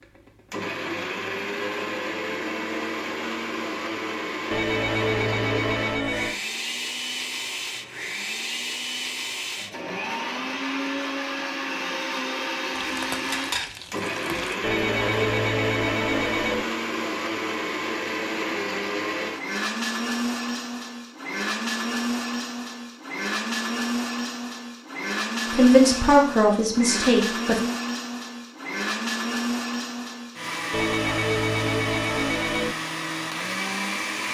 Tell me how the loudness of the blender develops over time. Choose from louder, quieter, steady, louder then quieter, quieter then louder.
steady.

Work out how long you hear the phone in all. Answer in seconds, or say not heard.
6 s.